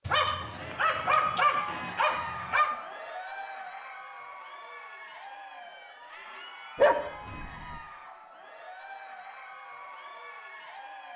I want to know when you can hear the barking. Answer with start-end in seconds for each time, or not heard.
0.1-2.8, 6.8-7.8.